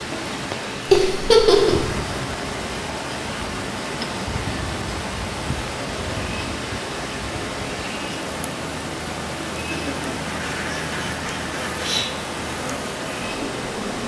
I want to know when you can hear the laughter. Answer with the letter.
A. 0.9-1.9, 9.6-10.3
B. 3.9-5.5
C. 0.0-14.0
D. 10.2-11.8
A.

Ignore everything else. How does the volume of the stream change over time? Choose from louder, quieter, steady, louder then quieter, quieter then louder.
steady.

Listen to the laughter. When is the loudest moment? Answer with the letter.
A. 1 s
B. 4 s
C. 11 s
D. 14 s
A.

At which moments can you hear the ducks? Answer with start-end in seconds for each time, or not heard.
10.2-11.8.